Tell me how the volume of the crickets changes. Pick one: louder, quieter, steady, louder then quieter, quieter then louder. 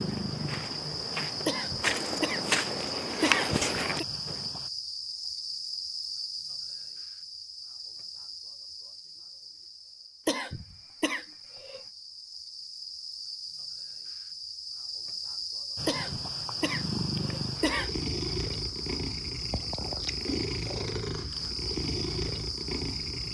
quieter then louder.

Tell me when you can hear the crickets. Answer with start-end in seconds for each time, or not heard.
0.0-23.2.